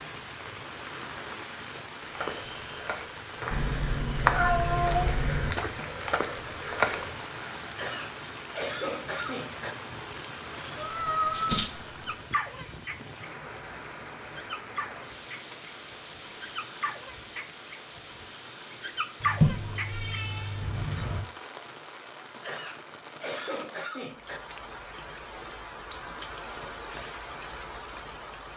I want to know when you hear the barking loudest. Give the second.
19 s.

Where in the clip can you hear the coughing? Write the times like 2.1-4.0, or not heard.
7.8-9.8, 22.4-24.4.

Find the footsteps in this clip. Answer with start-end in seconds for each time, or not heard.
2.0-7.2.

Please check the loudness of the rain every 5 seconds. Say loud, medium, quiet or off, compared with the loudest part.
loud, loud, loud, medium, medium, loud.